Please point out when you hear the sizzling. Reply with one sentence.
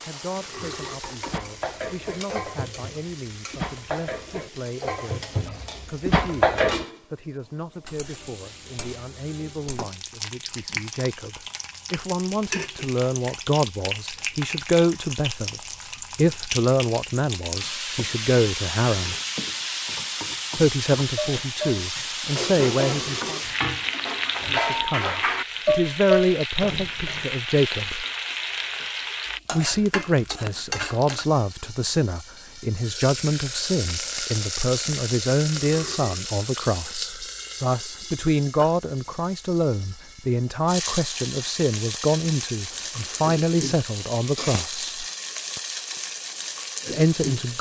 The sizzling can be heard from 0.0 to 47.5 s.